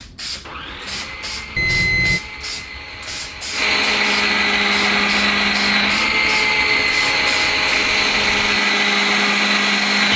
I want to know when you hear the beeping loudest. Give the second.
2 s.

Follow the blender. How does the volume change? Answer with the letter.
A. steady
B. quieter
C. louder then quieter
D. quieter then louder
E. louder
E.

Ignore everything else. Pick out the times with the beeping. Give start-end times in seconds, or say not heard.
1.6-2.2, 6.0-7.7.